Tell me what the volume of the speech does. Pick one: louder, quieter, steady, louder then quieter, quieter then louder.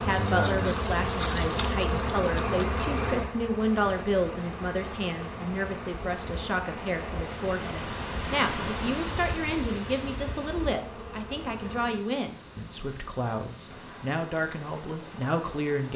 steady.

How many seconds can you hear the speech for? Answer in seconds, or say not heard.
16 s.